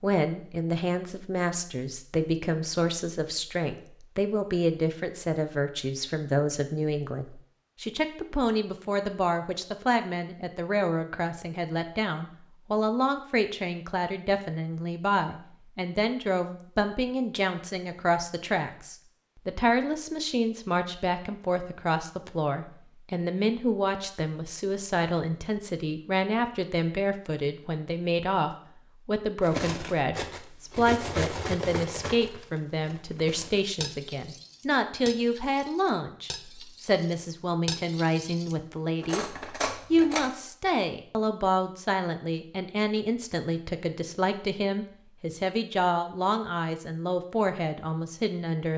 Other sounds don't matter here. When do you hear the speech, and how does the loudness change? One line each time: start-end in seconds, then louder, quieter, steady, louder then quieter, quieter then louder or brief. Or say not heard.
0.0-48.7 steady.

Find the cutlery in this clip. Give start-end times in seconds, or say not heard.
29.4-40.3.